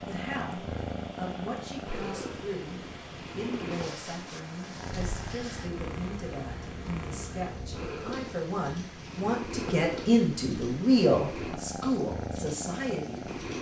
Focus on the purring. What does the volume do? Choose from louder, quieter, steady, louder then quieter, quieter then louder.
steady.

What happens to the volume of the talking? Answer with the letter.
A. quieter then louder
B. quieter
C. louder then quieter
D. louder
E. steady
D.